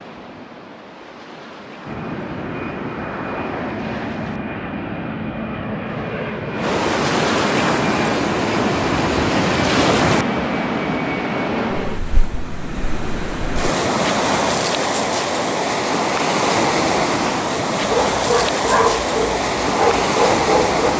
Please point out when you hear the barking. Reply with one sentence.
You can hear the barking from 17.8 to 20.9 s.